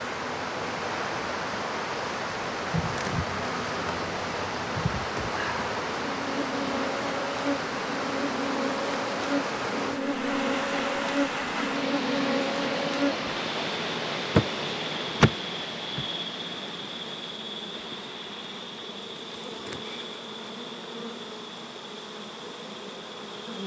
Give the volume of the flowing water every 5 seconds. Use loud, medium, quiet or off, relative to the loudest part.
loud, loud, loud, medium, quiet.